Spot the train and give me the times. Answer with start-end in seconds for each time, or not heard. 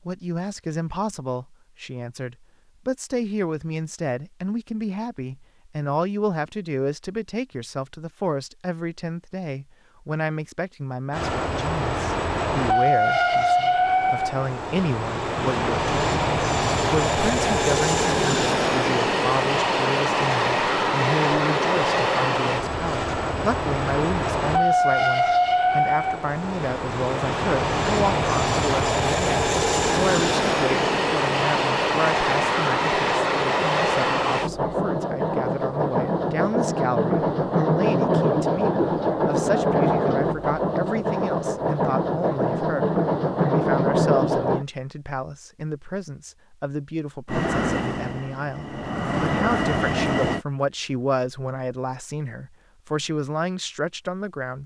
11.1-44.6, 47.2-50.5.